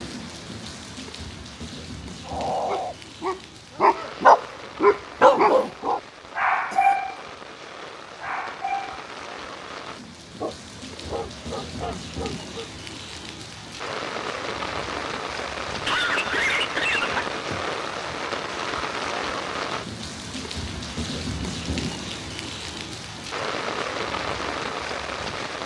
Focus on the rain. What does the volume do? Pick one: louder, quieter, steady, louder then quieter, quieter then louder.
louder.